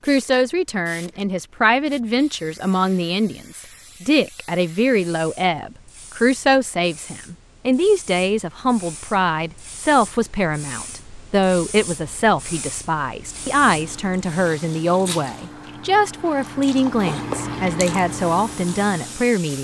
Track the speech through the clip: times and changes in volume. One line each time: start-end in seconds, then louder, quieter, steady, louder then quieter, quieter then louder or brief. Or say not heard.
0.1-19.5 steady.